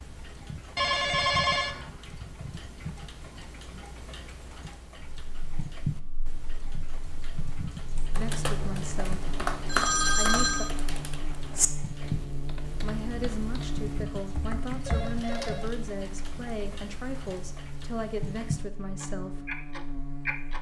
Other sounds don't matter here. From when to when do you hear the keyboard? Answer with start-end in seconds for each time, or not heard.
8.0-15.2.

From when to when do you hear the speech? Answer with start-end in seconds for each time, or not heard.
8.2-9.2, 10.2-10.7, 12.8-19.4.